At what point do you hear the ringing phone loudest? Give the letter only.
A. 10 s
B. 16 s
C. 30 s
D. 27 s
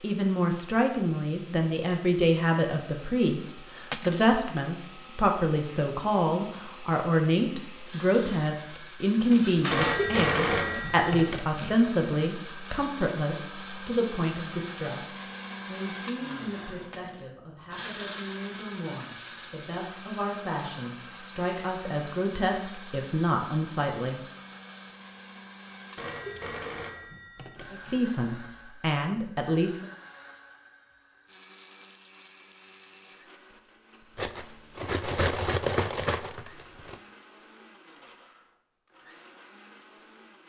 A.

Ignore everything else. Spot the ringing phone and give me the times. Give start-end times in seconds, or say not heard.
9.7-11.7, 25.9-28.0.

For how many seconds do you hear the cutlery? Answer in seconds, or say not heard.
5 s.